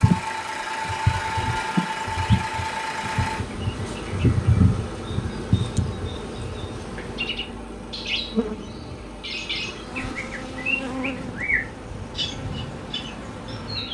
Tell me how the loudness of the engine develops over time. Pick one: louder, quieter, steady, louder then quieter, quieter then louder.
quieter.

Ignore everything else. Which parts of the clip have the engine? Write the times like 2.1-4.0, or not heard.
0.0-13.8.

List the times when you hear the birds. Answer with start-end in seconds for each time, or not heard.
0.0-13.8.